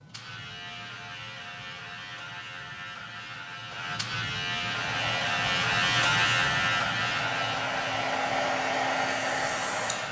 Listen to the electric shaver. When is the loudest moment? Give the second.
6 s.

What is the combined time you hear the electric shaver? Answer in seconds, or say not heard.
10 s.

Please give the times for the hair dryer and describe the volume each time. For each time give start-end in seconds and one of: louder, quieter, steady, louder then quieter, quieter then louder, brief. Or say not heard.
4.7-10.0 louder.